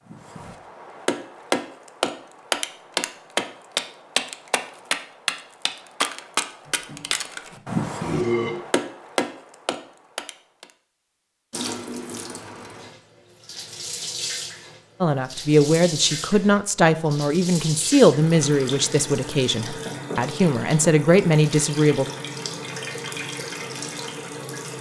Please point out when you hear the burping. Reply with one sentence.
The burping can be heard from 6.7 to 8.6 s.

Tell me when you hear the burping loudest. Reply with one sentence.
The volume of the burping peaks at 8 seconds.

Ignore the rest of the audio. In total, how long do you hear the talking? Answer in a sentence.
The talking can be heard for 7 seconds in total.